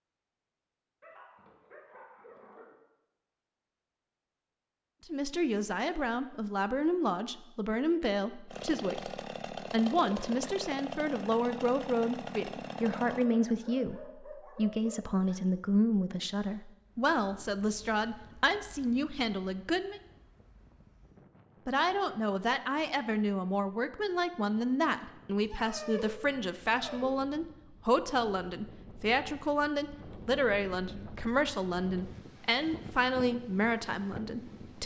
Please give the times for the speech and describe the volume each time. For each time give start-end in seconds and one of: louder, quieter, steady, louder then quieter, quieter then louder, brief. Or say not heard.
5.0-20.0 steady
21.6-34.8 steady.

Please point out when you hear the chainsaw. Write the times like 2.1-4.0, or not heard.
8.4-13.2.